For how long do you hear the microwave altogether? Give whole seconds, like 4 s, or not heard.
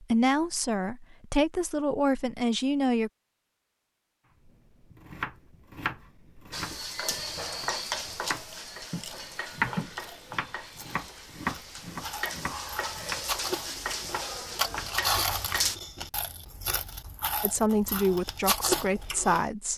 not heard.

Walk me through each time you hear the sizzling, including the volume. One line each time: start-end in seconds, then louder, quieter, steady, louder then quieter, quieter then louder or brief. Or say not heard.
6.5-15.8 quieter then louder.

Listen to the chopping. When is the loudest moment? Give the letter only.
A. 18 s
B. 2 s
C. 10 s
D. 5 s
C.